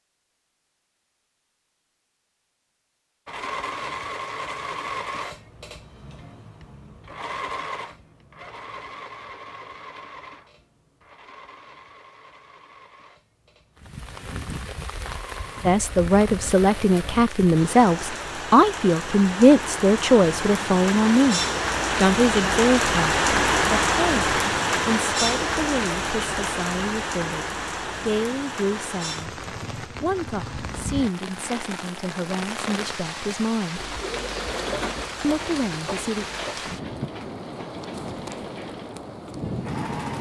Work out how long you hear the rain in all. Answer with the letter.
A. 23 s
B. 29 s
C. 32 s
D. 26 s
D.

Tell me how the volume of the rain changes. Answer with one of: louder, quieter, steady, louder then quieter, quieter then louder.
louder then quieter.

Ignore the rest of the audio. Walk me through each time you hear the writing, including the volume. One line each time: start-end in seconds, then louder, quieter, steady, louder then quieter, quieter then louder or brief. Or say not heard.
not heard.